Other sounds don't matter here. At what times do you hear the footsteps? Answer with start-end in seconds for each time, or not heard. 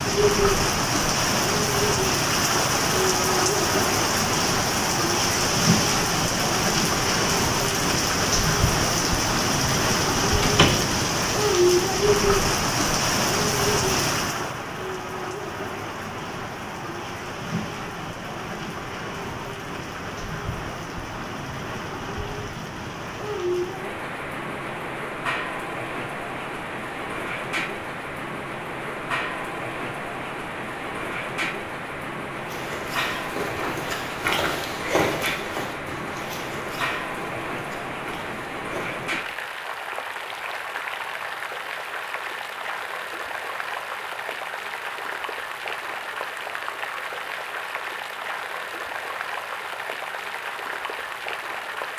32.4-39.1.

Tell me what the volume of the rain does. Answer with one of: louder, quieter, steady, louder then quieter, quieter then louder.
quieter.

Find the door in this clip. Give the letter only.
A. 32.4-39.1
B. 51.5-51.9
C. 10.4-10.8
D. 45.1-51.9
C.